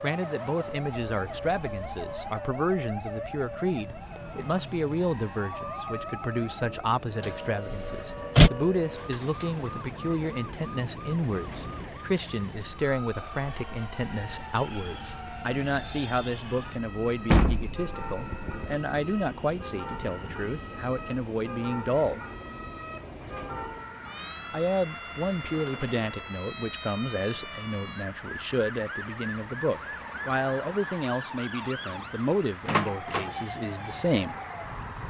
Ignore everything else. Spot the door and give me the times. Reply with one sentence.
You can hear the door from 7.2 to 8.5 s, from 17.3 to 18.8 s and from 32.6 to 33.3 s.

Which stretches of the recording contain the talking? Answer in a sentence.
You can hear the talking from 0.0 to 22.2 s and from 24.5 to 34.4 s.